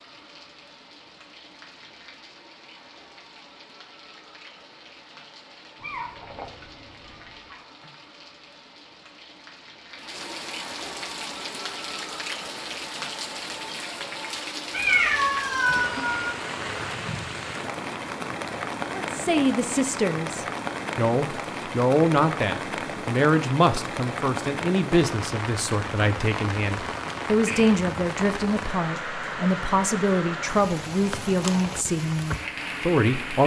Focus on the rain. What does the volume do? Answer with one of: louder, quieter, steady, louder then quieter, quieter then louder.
louder.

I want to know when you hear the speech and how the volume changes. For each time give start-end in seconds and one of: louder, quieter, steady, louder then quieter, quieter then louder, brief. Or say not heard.
18.9-33.4 steady.